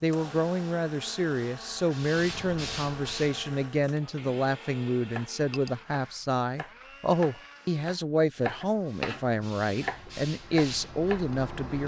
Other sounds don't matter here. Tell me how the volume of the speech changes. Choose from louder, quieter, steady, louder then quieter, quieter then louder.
steady.